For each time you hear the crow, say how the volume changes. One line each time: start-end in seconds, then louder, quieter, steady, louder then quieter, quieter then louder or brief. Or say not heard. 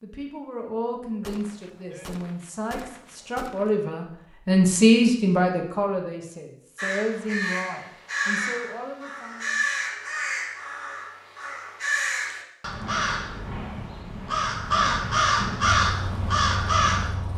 6.8-17.1 louder.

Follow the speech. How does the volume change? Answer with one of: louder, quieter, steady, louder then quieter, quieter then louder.
louder then quieter.